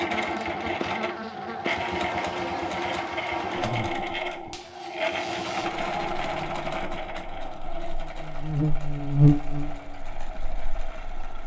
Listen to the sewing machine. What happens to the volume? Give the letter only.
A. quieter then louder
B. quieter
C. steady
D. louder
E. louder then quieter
B.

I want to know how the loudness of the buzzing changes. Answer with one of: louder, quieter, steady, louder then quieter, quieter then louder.
quieter then louder.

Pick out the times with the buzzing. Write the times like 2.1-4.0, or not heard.
0.0-11.4.